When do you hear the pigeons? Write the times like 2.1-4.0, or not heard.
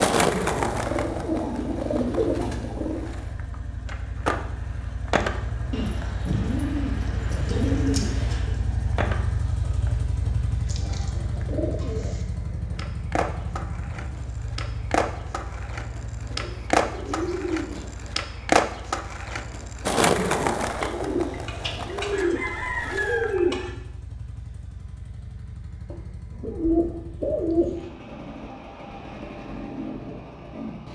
0.8-3.0, 5.7-8.6, 10.7-12.2, 16.3-17.9, 20.8-23.7, 25.9-27.8.